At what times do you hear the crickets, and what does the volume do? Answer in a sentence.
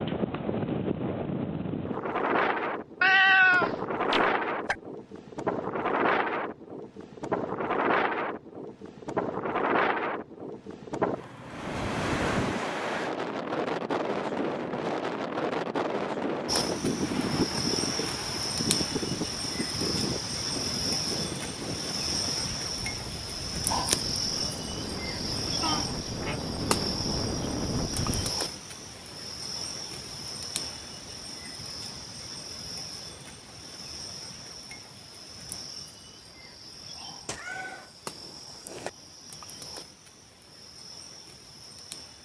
You can hear the crickets from 16.4 to 42.1 s, getting quieter.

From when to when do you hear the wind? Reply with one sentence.
The wind can be heard from 0.0 to 28.3 s.